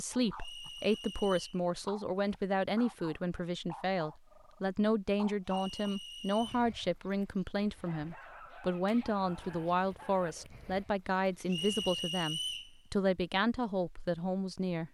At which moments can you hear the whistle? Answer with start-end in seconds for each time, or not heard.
0.3-1.6, 5.5-6.7, 11.4-12.7.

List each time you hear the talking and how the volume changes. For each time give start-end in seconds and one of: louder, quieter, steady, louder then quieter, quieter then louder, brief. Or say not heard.
0.0-14.8 steady.